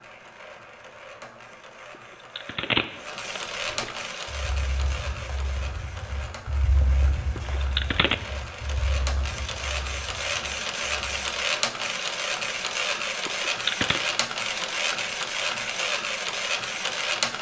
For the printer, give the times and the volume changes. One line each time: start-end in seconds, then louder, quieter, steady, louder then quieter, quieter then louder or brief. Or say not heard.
0.0-17.3 louder.